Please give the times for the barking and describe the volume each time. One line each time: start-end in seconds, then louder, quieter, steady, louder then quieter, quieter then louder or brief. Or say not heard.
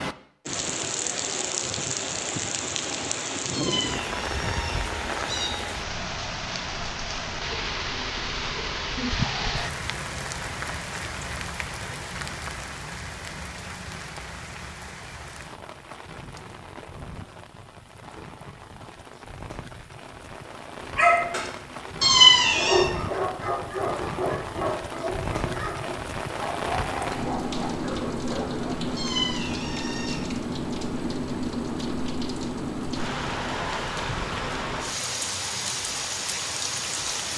20.9-28.9 louder then quieter.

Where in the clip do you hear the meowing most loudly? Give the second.
22 s.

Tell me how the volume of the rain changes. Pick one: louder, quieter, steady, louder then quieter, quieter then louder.
quieter then louder.